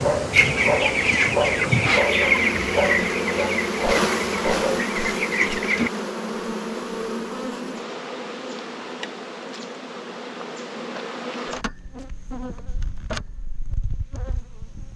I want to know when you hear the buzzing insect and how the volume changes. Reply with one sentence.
You can hear the buzzing insect from 0.0 to 14.9 s, getting quieter.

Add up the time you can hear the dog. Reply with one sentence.
The dog can be heard for 5 seconds in total.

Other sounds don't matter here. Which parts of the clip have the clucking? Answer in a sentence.
You can hear the clucking from 0.3 to 5.9 s.